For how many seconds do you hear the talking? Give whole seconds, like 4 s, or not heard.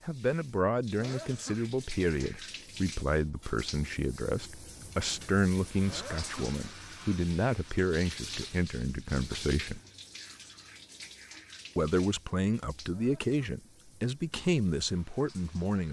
14 s.